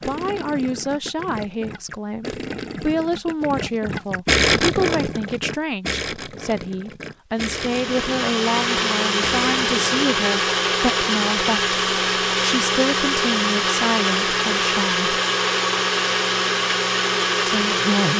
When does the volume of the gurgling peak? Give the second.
4 s.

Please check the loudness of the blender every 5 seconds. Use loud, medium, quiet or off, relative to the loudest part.
off, loud, loud, loud.